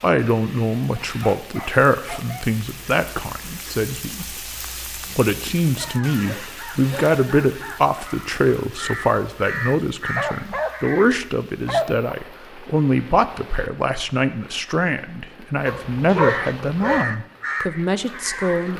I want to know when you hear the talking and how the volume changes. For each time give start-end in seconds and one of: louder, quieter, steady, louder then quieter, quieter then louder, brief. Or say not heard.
0.0-18.7 steady.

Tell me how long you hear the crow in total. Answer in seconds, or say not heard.
8 s.